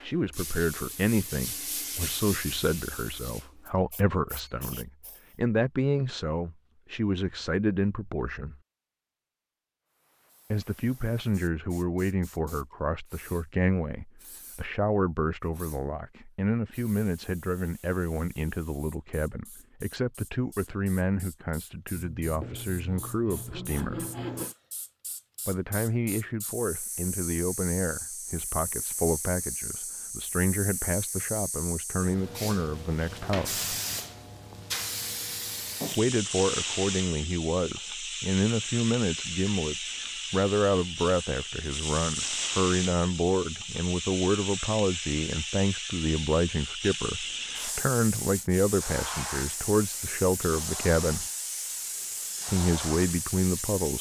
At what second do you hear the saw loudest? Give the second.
24 s.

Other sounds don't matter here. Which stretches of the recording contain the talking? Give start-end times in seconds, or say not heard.
0.0-8.6, 10.5-24.1, 25.4-33.6, 36.0-51.2, 52.5-53.9.